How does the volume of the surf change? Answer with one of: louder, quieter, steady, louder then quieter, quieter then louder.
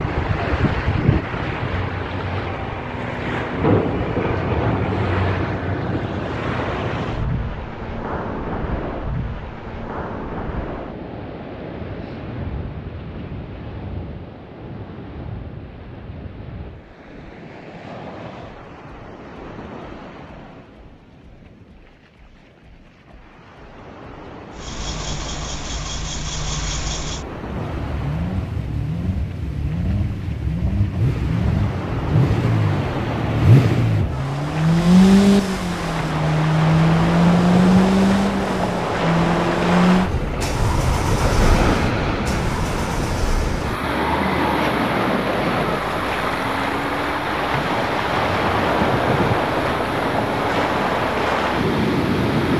quieter then louder.